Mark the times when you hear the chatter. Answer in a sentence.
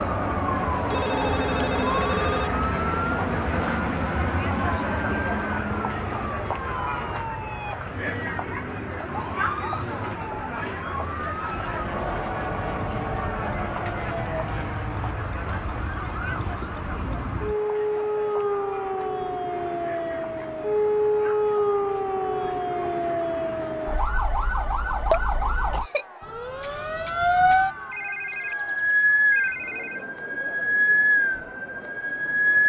The chatter can be heard from 0.0 to 32.6 s.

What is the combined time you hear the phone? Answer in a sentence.
You can hear the phone for 4 seconds altogether.